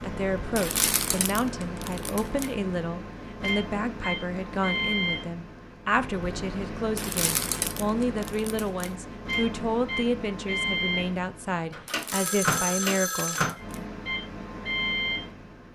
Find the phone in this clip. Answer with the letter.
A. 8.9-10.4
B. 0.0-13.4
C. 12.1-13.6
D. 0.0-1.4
C.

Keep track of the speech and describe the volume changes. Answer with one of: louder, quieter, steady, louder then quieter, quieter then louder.
steady.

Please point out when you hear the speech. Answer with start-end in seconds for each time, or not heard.
0.0-13.4.